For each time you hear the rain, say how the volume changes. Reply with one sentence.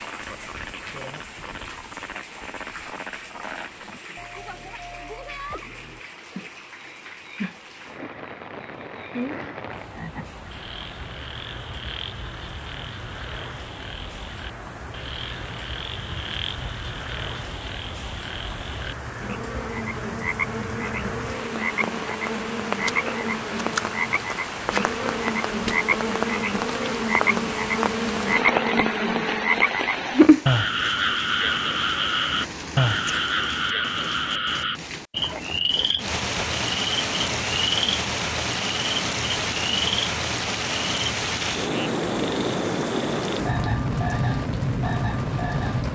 The rain can be heard from 0.0 to 45.8 s, getting louder.